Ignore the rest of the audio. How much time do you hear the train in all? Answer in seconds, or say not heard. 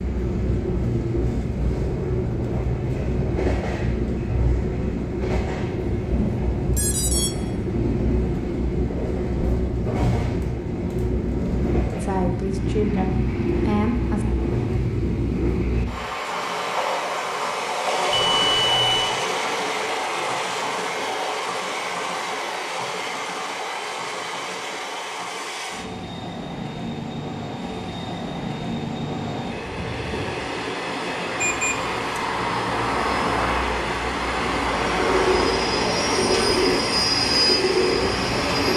39 s.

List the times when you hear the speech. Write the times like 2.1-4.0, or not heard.
12.0-14.3.